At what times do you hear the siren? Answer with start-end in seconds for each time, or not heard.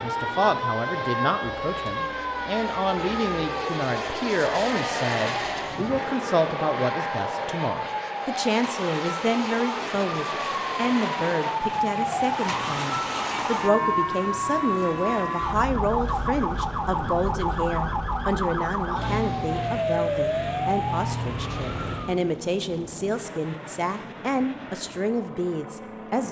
0.0-22.2.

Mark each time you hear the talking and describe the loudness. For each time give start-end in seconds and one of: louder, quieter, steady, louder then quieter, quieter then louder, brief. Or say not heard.
0.0-26.2 steady.